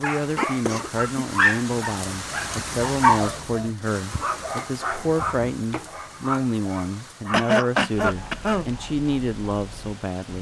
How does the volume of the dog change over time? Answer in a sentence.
The loudness of the dog goes down.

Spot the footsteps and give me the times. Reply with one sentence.
You can't hear the footsteps here.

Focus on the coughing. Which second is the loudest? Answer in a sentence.
The loudest moment of the coughing is at 8 seconds.